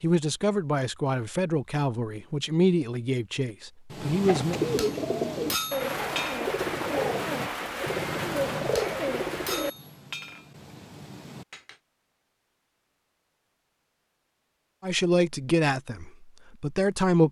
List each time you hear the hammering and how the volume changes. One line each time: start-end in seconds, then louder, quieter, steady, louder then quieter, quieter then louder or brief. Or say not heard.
3.9-11.8 quieter.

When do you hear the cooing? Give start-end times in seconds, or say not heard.
4.2-9.7.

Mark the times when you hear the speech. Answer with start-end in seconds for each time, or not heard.
0.0-4.5, 14.8-17.2.